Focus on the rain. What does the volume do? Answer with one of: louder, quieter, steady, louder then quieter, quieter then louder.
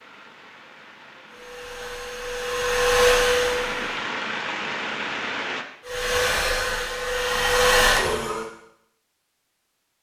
louder.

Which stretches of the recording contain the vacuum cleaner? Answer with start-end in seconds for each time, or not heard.
1.3-4.0, 5.8-8.4.